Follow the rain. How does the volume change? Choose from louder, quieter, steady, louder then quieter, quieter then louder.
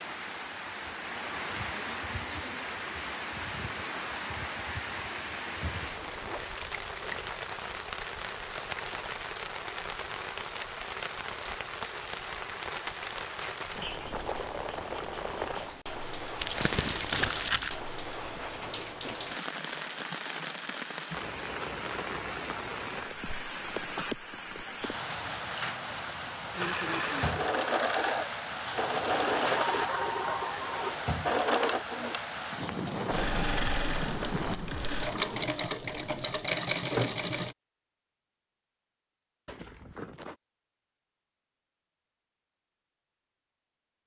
steady.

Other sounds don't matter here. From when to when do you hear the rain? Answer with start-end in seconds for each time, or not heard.
0.0-35.5.